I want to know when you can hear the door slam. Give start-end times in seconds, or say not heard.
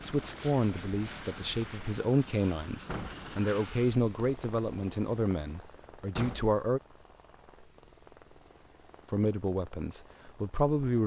2.9-3.3, 6.2-6.6.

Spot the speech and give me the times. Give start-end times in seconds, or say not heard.
0.0-6.8, 9.1-11.0.